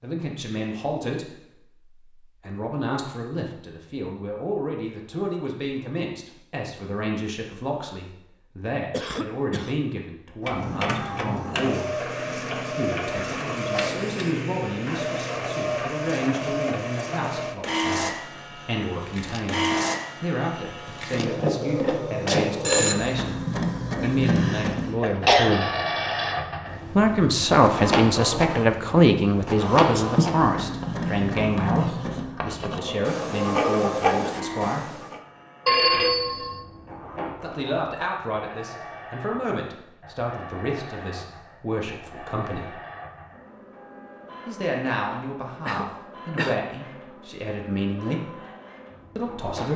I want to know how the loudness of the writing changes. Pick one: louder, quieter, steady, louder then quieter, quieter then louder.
louder.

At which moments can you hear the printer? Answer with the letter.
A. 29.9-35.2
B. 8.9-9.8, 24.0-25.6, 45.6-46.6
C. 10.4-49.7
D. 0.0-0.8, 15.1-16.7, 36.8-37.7
C.